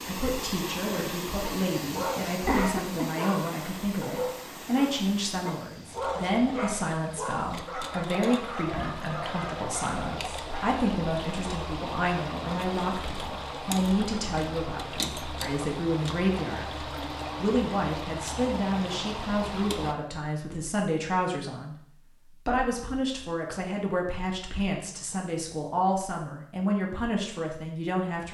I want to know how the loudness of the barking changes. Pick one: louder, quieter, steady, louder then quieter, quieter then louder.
steady.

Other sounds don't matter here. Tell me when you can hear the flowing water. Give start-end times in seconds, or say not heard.
0.0-19.9.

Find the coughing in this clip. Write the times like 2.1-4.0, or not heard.
2.5-3.2.